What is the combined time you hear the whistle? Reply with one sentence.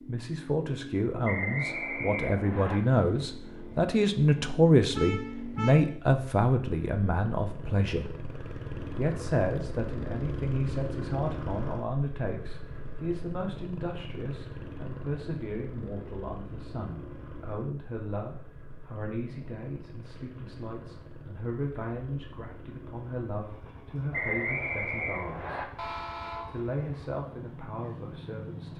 The whistle can be heard for 3 seconds in total.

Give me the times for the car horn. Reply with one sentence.
The car horn can be heard from 5.0 to 5.9 s and from 25.8 to 26.6 s.